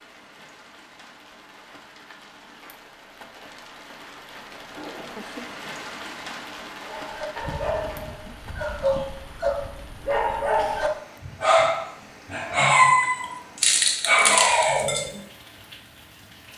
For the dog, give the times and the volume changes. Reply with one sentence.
The dog can be heard from 6.8 to 15.1 s, getting louder.